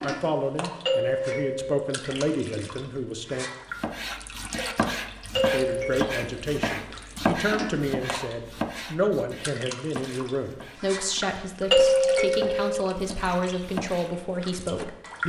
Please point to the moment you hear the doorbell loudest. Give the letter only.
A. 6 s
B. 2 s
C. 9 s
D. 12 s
D.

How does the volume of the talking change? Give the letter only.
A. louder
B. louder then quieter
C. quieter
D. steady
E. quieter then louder
D.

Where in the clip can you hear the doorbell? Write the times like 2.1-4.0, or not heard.
0.8-1.8, 5.3-6.1, 11.7-12.8.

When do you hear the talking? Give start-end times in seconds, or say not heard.
0.0-3.5, 5.5-15.2.